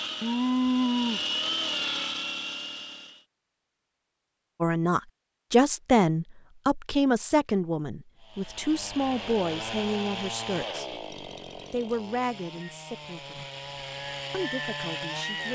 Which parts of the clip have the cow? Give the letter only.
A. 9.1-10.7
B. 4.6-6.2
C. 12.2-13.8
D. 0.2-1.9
D.